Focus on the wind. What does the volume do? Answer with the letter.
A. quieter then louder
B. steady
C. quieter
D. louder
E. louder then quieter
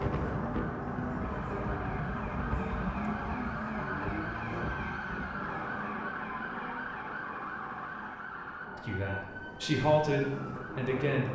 C.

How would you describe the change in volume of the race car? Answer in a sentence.
The volume of the race car goes down, then up.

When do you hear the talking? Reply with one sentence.
The talking can be heard from 8.8 to 11.3 s.